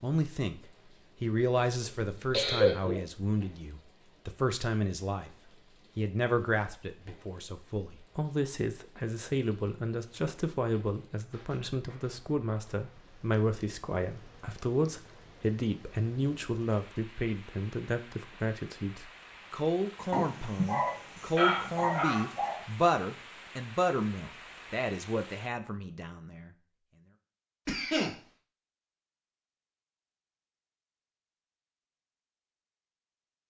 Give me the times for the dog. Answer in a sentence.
You can hear the dog from 20.1 to 22.6 s.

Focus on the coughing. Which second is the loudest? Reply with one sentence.
The volume of the coughing peaks at 3 seconds.